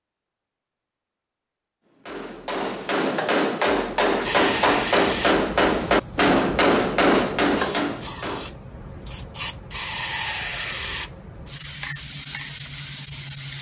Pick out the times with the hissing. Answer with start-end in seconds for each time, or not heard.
4.2-13.5.